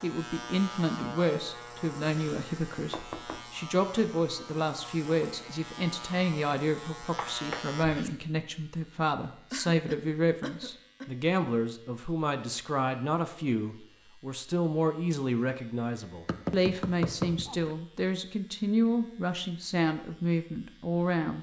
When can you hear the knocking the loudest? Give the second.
17 s.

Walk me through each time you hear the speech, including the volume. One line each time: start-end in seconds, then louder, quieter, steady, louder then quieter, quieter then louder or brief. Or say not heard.
0.0-21.3 steady.